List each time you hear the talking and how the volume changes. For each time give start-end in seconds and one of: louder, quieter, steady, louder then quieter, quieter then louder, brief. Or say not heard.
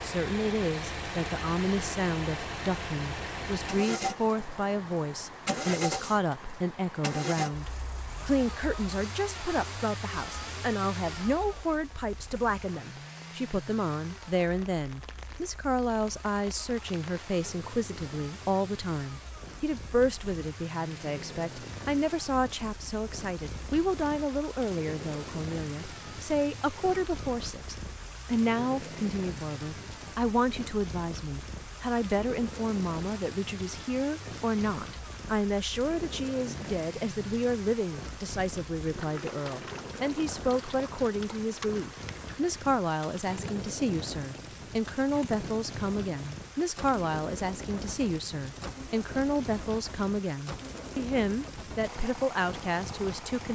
0.0-53.5 steady.